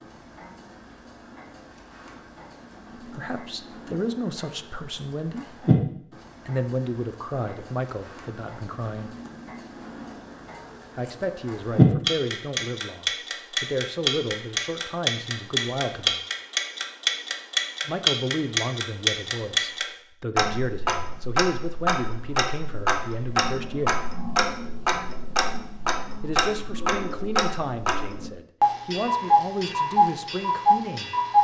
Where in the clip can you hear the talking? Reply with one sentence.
The talking can be heard from 3.0 to 5.7 s, from 6.5 to 9.2 s, from 10.9 to 16.2 s, from 17.9 to 24.0 s and from 26.2 to 31.1 s.